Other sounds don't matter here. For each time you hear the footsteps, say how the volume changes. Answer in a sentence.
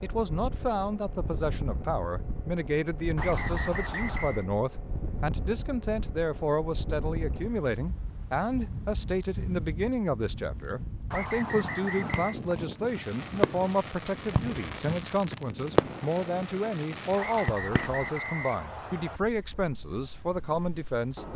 The footsteps can't be heard in this clip.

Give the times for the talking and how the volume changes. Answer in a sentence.
You can hear the talking from 0.0 to 21.3 s, at a steady volume.